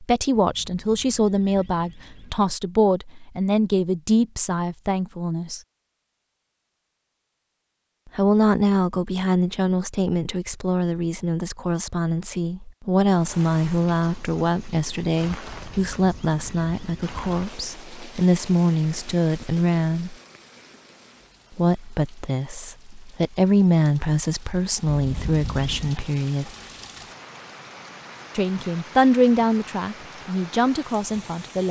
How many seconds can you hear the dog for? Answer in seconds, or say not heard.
not heard.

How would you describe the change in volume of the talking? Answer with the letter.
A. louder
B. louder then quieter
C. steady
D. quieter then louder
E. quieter
C.